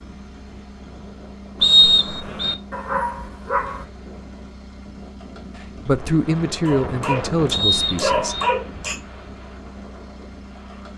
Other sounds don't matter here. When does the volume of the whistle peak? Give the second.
2 s.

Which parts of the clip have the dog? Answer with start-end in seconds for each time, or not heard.
2.7-3.9, 6.7-9.0.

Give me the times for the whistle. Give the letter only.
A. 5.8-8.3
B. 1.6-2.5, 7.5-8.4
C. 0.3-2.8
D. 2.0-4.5
B.